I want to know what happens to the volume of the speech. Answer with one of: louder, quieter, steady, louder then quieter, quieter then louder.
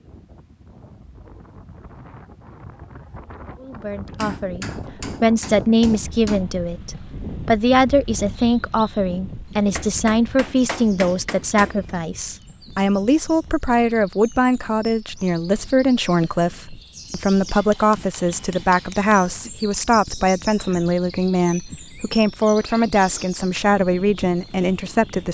steady.